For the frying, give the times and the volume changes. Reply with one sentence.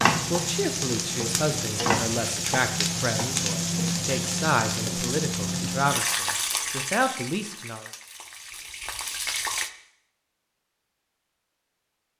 You can hear the frying from 0.0 to 9.7 s, getting quieter.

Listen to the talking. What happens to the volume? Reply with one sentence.
The volume of the talking stays about the same.